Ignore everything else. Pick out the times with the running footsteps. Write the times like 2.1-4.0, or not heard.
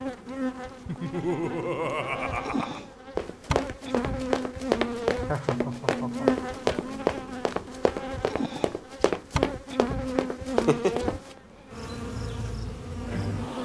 3.1-11.3.